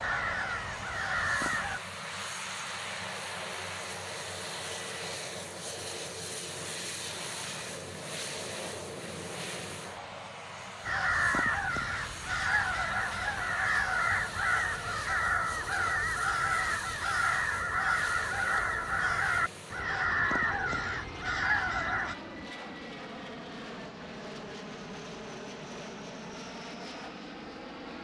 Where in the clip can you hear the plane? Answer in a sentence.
You can hear the plane from 0.0 to 27.9 s.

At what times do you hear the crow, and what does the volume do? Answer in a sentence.
You can hear the crow briefly from 0.0 to 1.8 s; and from 10.8 to 22.1 s, at a steady volume.